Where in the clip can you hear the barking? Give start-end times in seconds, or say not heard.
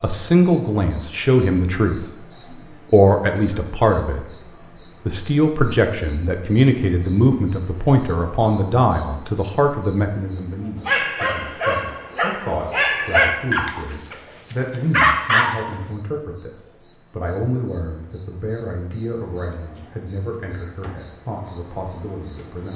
10.8-15.6.